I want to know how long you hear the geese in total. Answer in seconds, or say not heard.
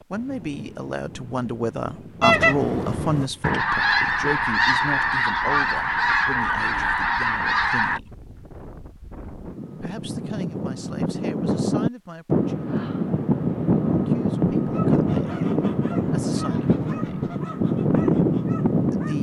10 s.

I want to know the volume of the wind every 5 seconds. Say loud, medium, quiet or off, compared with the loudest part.
quiet, quiet, loud, loud.